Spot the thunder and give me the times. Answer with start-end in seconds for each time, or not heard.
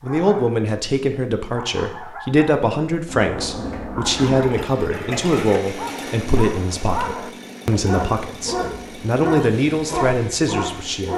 3.0-4.5.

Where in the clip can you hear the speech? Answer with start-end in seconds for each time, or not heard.
0.0-11.1.